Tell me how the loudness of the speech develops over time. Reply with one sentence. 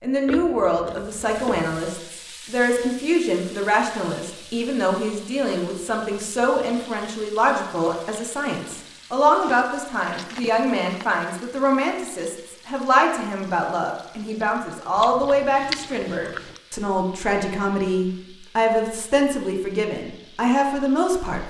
The loudness of the speech stays about the same.